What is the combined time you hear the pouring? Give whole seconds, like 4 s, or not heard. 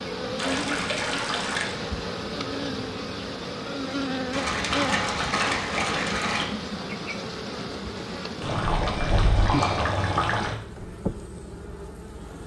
6 s.